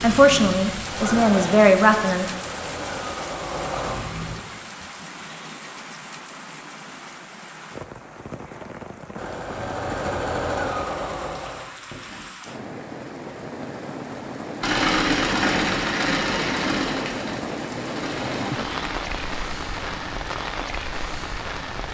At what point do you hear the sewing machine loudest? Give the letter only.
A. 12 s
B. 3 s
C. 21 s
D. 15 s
D.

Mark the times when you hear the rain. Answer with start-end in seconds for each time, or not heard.
0.0-21.9.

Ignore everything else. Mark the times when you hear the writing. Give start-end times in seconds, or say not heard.
not heard.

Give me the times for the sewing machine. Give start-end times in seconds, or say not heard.
0.0-4.3, 9.2-12.2, 14.6-21.8.